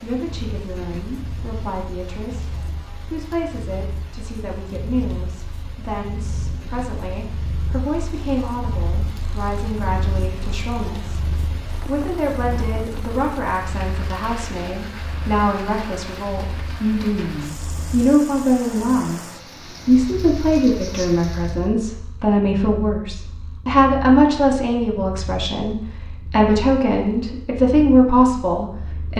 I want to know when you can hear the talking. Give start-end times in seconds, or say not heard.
0.0-11.2, 11.8-19.2, 19.9-29.1.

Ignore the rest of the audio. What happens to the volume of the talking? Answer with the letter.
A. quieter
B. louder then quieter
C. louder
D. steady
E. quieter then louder
C.